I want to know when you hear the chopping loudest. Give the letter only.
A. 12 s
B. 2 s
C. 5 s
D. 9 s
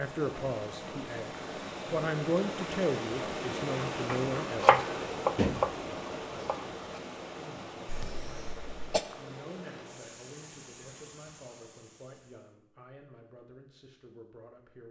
C.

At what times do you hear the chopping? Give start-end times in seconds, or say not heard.
4.0-7.0.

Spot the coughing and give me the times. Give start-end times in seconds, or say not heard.
7.8-9.1.